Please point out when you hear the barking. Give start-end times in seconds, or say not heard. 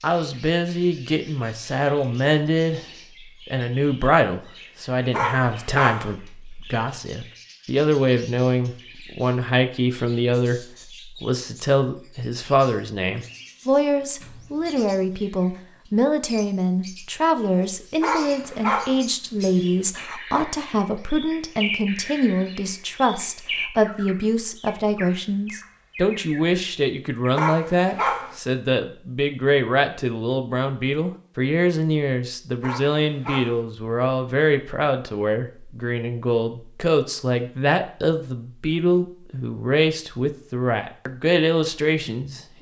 5.1-6.1, 18.0-19.0, 27.4-28.4, 32.6-33.6.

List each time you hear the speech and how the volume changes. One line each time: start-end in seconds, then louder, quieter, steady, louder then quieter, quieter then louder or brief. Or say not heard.
0.0-2.9 brief
3.5-42.4 steady.